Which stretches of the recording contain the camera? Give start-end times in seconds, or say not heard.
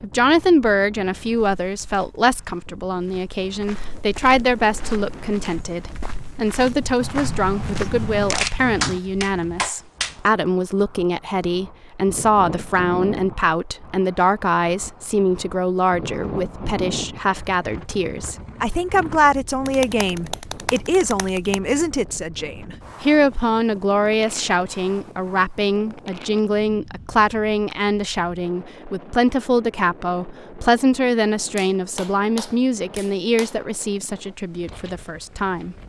7.0-9.0.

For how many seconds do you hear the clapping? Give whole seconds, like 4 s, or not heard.
6 s.